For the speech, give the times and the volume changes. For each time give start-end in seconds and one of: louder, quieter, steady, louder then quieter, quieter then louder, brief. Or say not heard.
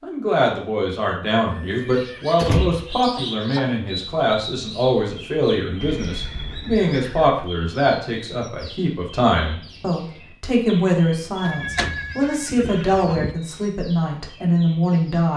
0.0-15.3 steady.